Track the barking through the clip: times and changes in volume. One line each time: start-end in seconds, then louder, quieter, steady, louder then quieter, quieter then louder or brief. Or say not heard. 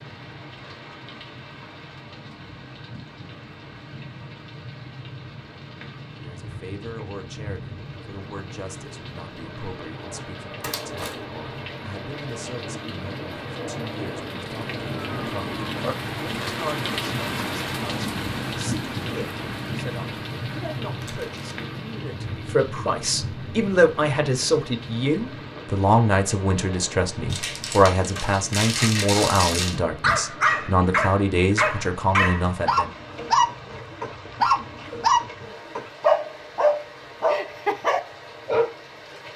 30.0-38.7 steady.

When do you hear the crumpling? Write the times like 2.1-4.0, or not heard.
10.6-11.2, 21.0-21.6, 27.2-29.8.